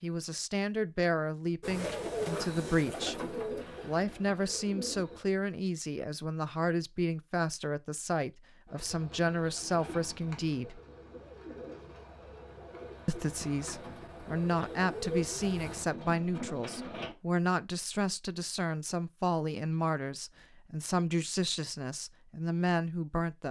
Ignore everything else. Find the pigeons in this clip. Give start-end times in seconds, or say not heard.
1.6-5.2, 8.7-17.1.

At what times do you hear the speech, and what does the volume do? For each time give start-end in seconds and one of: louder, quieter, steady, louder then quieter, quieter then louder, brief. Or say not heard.
0.0-10.8 steady
13.1-23.4 steady.